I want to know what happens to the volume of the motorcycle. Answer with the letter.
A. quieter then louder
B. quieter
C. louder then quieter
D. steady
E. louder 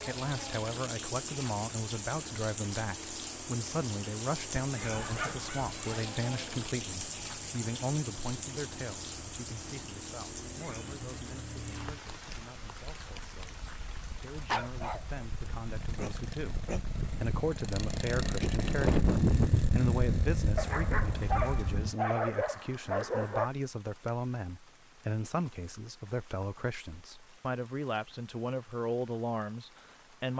E.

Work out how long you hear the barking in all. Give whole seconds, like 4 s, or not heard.
6 s.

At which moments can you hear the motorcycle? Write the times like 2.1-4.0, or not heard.
0.0-21.9.